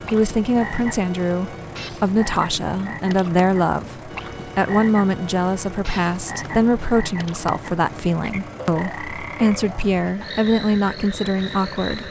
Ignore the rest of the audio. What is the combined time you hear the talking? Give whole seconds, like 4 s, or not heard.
12 s.